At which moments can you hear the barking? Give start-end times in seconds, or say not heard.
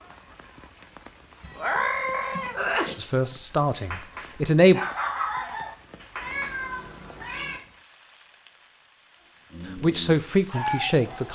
3.8-6.6, 9.5-11.3.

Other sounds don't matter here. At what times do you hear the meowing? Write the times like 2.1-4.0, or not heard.
1.4-3.0, 6.2-7.6.